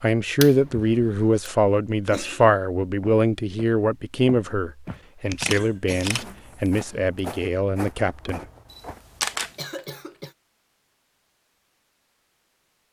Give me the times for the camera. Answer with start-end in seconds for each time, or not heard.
0.4-1.2, 5.2-6.7, 8.7-9.6.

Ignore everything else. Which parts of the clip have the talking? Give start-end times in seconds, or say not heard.
0.0-8.4.